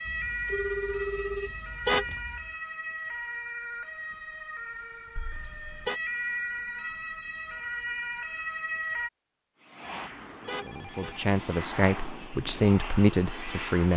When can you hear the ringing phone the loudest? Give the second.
1 s.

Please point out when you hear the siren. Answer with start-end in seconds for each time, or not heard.
0.0-9.1.